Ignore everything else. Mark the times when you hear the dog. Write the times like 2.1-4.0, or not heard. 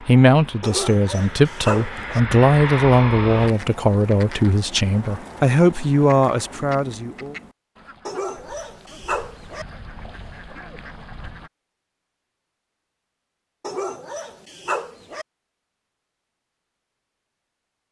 0.6-2.2, 8.1-9.7, 13.6-15.2.